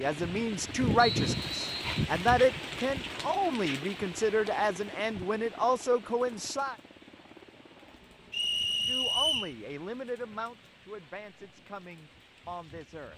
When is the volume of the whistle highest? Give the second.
9 s.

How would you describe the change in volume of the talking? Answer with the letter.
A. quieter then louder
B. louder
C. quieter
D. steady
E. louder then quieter
C.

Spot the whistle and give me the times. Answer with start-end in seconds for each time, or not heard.
0.9-1.9, 8.3-9.6.